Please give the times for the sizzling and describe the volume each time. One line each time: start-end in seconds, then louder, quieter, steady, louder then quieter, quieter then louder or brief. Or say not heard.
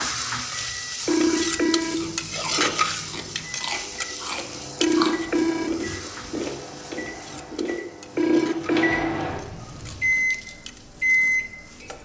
0.0-11.9 quieter.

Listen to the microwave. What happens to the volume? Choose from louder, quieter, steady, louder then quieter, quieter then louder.
louder.